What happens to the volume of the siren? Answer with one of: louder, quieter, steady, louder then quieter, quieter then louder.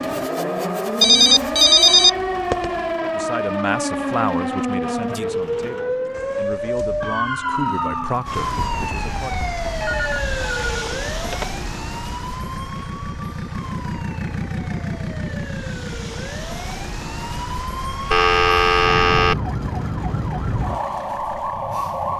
quieter then louder.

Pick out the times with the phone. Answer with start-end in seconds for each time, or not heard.
1.0-2.7, 9.8-11.4, 18.1-19.4.